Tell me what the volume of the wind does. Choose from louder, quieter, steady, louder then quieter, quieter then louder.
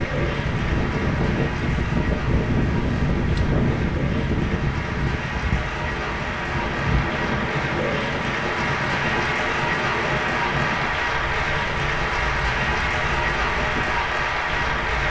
quieter.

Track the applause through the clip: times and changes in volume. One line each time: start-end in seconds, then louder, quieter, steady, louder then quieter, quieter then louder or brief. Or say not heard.
0.0-15.0 louder.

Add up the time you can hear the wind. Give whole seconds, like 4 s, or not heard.
15 s.